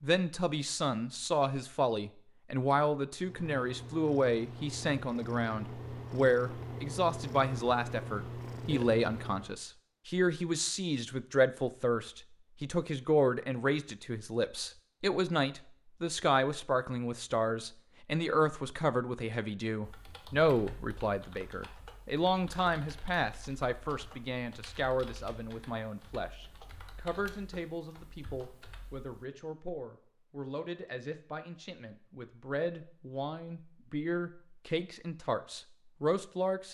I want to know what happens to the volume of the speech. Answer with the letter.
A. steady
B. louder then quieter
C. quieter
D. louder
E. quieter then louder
C.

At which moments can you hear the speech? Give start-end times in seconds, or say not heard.
0.0-36.6.